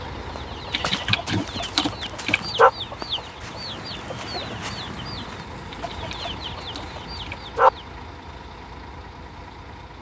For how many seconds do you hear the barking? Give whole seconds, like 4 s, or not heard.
4 s.